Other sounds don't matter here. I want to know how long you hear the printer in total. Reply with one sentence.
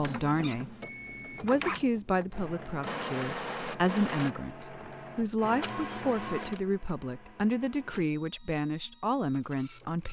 You can hear the printer for 10 seconds altogether.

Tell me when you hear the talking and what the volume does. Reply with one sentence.
You can hear the talking briefly from 0.0 to 0.8 s; and from 1.4 to 10.0 s, at a steady volume.